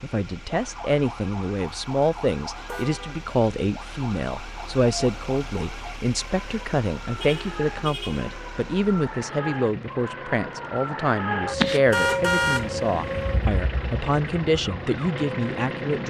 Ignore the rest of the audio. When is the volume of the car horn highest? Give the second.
12 s.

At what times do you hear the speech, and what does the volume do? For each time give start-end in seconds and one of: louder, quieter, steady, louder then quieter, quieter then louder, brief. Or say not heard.
0.0-16.0 steady.